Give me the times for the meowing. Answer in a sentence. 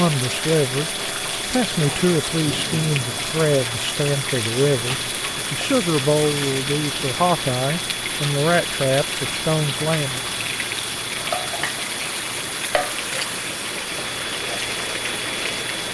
The meowing can't be heard in this clip.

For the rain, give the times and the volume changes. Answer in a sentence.
The rain can be heard from 0.0 to 15.9 s, at a steady volume.